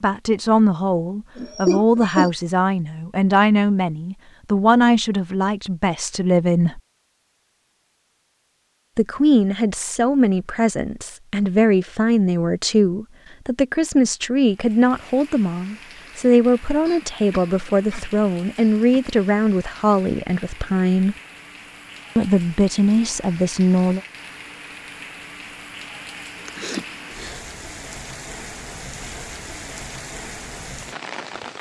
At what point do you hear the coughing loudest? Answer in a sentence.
The volume of the coughing peaks at 2 seconds.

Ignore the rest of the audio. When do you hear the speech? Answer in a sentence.
The speech can be heard from 0.0 to 6.8 s, from 8.9 to 21.1 s and from 22.1 to 24.0 s.